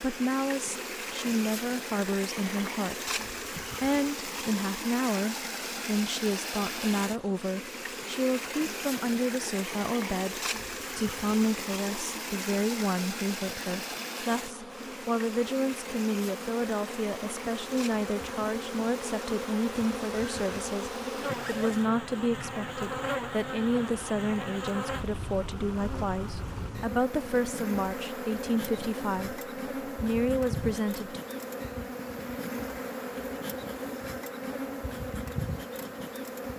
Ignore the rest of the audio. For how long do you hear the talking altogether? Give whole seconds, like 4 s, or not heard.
31 s.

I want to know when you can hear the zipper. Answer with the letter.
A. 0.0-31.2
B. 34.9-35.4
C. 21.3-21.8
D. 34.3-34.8
C.